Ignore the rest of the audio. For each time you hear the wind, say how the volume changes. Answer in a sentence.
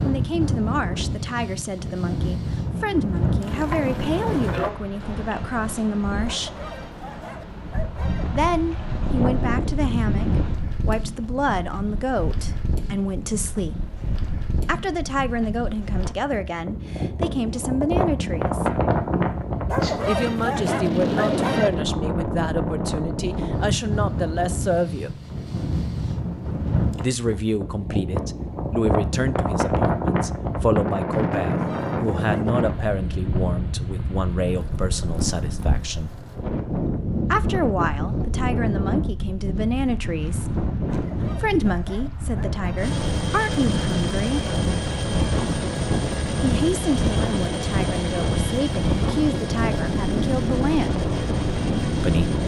The wind can be heard from 0.0 to 52.4 s, at a steady volume.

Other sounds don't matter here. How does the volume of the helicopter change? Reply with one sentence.
The loudness of the helicopter stays about the same.